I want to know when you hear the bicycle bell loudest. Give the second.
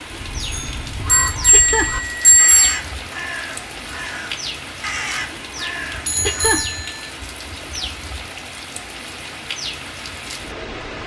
2 s.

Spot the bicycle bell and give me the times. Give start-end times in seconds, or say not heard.
0.4-2.8, 6.0-7.1.